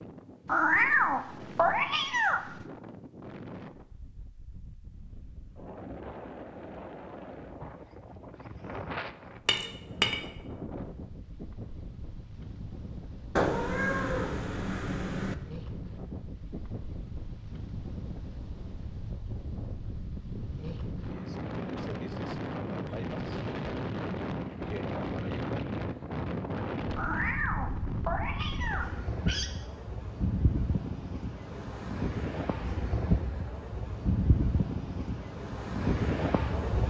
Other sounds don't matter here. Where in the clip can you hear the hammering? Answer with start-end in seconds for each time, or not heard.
9.4-10.3.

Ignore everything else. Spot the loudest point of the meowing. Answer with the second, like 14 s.
1 s.